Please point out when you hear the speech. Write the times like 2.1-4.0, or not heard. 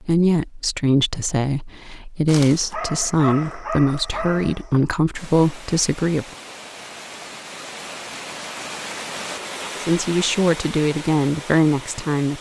0.0-6.2, 9.8-12.3.